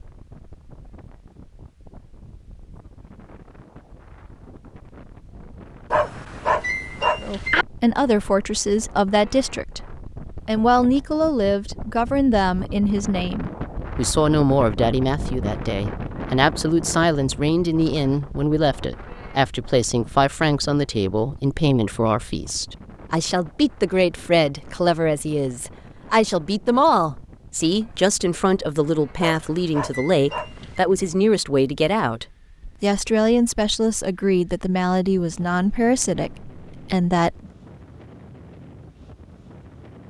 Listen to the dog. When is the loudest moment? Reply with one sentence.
The loudest moment of the dog is at 7 seconds.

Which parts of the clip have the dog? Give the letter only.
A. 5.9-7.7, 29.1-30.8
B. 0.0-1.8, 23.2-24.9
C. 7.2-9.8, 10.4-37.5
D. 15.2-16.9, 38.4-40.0
A.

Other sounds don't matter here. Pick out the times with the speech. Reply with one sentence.
The speech can be heard from 7.2 to 9.8 s and from 10.4 to 37.5 s.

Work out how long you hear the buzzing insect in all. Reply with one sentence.
You can't hear the buzzing insect here.